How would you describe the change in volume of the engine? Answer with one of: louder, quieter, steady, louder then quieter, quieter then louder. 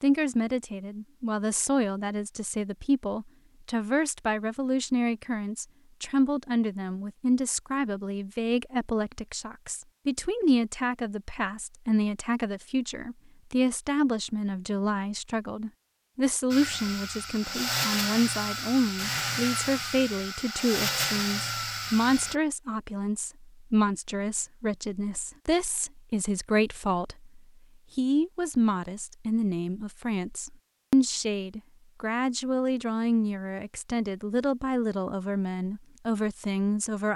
steady.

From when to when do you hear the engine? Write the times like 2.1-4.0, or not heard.
16.5-22.4.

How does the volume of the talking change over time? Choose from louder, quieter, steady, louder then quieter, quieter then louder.
steady.